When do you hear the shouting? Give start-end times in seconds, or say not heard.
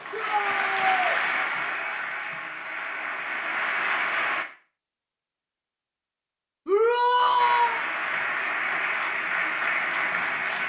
0.1-1.1, 6.7-7.8.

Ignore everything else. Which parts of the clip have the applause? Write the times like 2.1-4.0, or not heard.
0.0-4.5, 7.3-10.6.